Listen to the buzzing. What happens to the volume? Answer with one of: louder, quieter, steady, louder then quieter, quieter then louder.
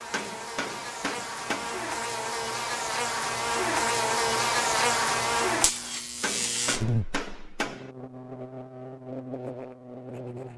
louder then quieter.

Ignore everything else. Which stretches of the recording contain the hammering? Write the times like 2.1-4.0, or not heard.
0.1-1.8, 6.2-7.9.